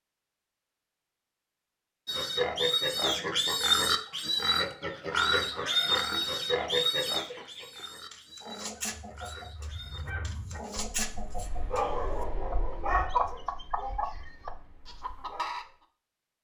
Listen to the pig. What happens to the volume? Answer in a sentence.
The volume of the pig goes down.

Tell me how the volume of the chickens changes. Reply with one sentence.
The loudness of the chickens goes up.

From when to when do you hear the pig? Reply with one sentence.
You can hear the pig from 2.0 to 10.1 s.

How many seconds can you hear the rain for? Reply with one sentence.
The rain can't be heard in this clip.